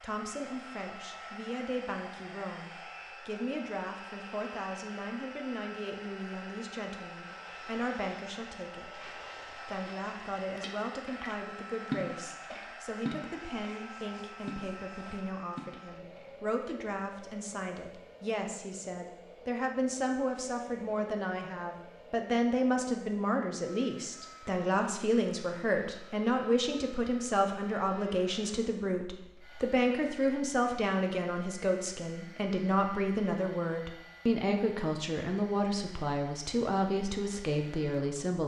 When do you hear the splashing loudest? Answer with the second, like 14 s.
12 s.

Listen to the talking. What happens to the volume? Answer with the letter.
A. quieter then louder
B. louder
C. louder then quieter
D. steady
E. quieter
B.